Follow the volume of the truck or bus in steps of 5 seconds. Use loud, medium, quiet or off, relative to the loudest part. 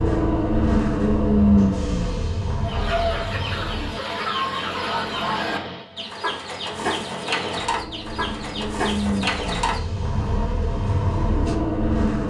loud, medium, loud.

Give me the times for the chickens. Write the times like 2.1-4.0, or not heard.
2.6-10.6.